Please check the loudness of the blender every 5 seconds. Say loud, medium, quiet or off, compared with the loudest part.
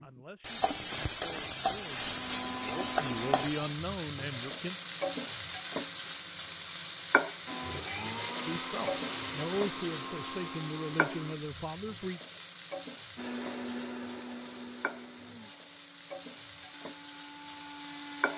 loud, loud, loud, medium.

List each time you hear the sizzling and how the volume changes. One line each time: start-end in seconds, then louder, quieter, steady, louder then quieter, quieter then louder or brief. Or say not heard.
0.0-18.3 quieter.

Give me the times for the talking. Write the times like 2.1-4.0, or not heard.
0.0-4.8, 8.4-12.2.